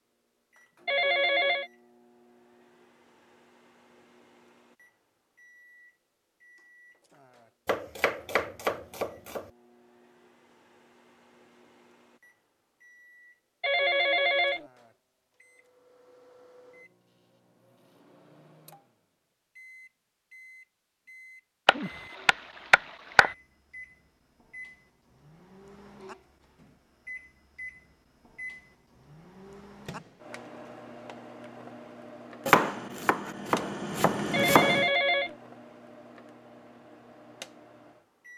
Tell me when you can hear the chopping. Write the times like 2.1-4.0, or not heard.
7.7-9.5, 21.6-23.3, 32.5-34.9.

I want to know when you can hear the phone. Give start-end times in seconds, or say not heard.
0.8-1.7, 13.6-14.7, 34.3-35.4.